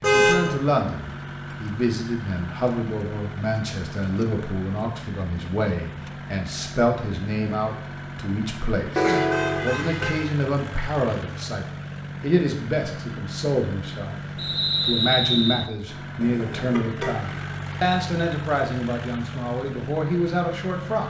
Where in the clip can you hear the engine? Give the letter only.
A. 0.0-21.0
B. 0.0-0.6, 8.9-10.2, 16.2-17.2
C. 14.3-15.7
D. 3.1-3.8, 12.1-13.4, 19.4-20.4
A.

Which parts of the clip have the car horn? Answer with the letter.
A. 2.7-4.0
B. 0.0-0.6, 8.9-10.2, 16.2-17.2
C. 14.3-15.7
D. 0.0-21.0
B.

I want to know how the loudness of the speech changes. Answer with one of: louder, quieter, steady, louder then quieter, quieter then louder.
steady.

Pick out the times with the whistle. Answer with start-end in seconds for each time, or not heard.
14.3-15.7.